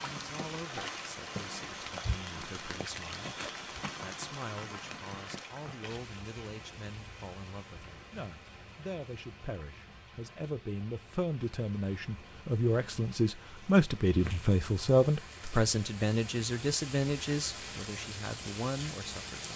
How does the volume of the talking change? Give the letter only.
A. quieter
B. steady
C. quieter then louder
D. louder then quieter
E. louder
D.